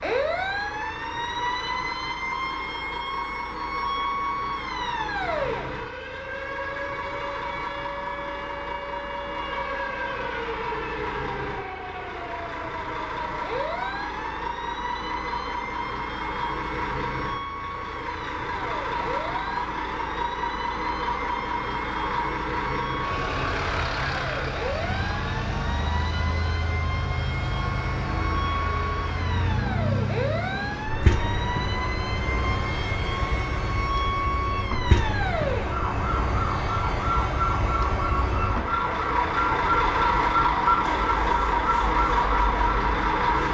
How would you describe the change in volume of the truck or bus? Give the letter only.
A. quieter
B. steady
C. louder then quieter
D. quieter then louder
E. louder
E.